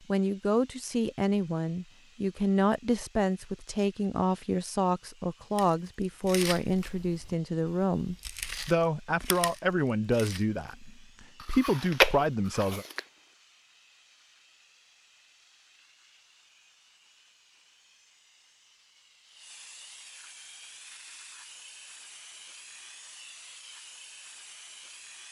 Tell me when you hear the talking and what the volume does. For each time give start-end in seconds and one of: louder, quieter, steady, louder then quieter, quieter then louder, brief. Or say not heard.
0.1-12.8 steady.